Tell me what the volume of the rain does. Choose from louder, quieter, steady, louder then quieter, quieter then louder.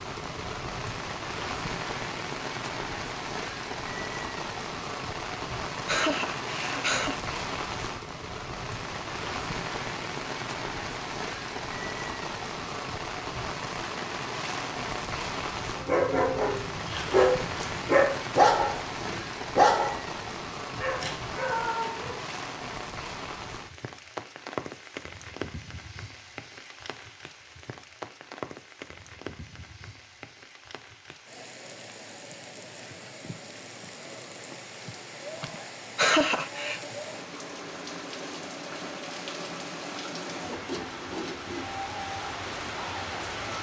quieter then louder.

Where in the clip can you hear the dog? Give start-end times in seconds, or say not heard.
15.8-22.1.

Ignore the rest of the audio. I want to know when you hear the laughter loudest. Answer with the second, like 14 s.
36 s.